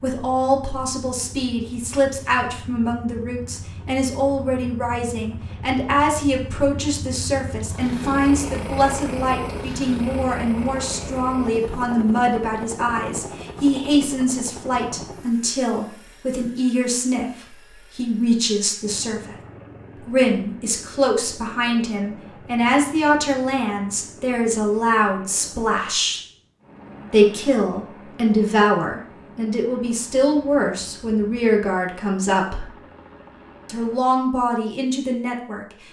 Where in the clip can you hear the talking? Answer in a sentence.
You can hear the talking from 0.0 to 19.4 s, from 19.9 to 26.2 s, from 27.1 to 32.6 s and from 33.6 to 35.6 s.